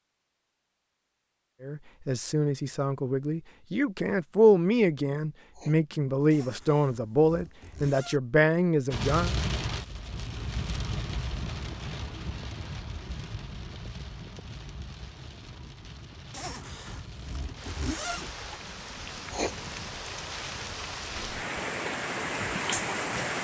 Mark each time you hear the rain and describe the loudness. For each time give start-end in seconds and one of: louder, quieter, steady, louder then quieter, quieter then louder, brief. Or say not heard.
8.9-23.4 quieter then louder.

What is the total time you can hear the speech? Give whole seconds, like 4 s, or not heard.
8 s.